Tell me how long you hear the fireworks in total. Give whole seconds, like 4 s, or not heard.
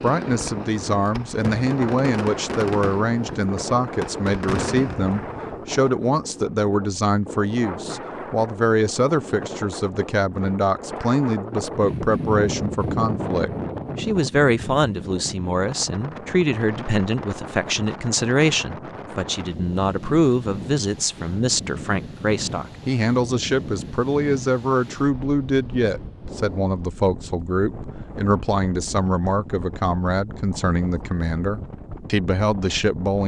6 s.